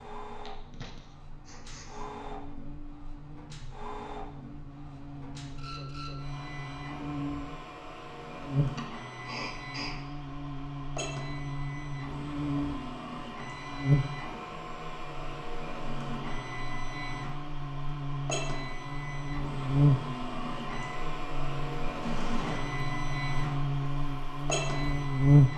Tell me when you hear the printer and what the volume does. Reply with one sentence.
You can hear the printer from 0.0 to 25.5 s, getting louder.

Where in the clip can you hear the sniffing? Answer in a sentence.
The sniffing can be heard from 0.5 to 2.0 s, from 8.8 to 9.9 s and from 22.0 to 22.6 s.